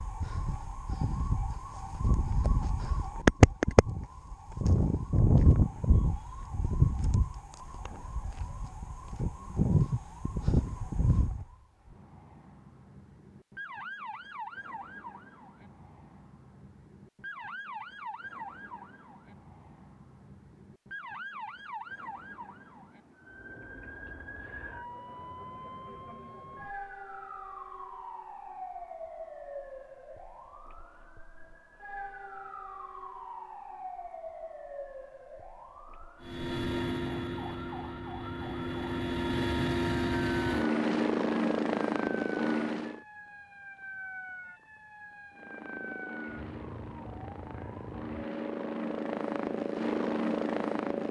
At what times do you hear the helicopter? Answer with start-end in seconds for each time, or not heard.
36.2-43.0, 45.4-51.0.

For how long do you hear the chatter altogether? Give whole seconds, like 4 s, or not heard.
not heard.